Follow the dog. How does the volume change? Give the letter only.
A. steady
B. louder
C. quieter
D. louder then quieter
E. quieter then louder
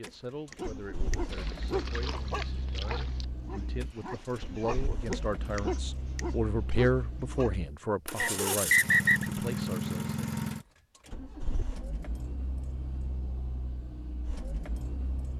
E.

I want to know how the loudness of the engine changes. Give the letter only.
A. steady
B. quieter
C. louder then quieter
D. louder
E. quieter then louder
C.